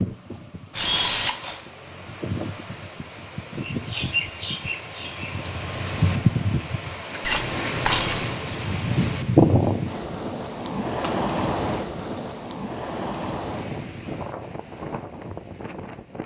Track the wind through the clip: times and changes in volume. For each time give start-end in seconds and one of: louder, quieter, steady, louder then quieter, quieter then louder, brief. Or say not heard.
0.0-16.2 louder then quieter.